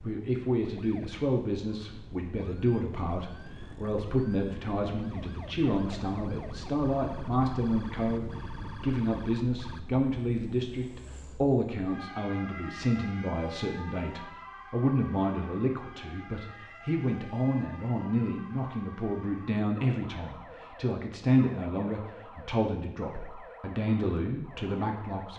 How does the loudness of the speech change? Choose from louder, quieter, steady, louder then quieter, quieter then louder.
steady.